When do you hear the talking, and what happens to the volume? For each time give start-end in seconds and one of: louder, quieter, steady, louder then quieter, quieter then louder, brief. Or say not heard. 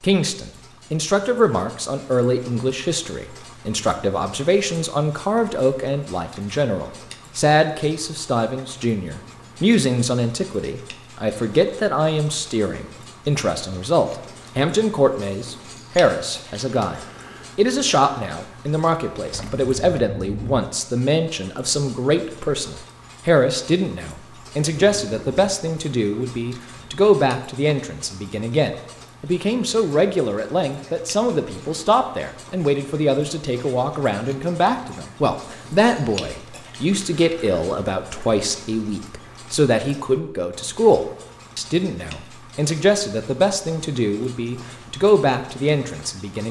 0.0-46.4 steady.